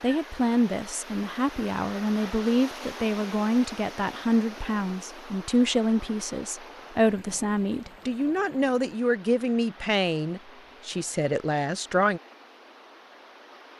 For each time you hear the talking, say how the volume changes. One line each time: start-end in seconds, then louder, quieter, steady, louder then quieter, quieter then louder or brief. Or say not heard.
0.0-12.2 steady.